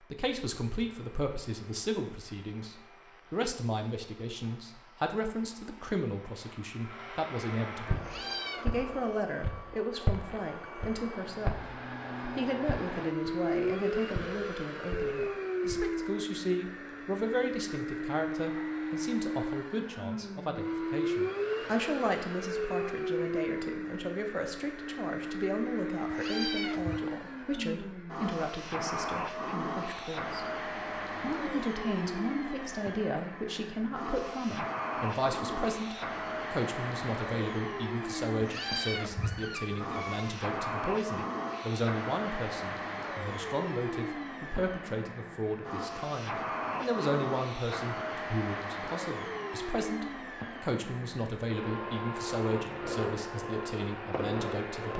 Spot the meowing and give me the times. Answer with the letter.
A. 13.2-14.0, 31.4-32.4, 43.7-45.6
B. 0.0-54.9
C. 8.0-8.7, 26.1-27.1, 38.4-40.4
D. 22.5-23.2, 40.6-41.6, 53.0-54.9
C.